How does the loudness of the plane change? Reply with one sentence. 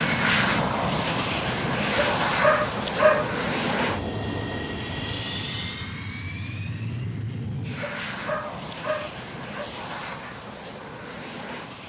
The loudness of the plane goes down.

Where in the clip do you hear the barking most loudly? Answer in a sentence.
The volume of the barking peaks at 3 seconds.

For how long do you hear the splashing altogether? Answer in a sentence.
The splashing can't be heard in this clip.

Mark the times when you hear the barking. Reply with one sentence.
You can hear the barking from 1.8 to 3.2 s and from 7.7 to 9.7 s.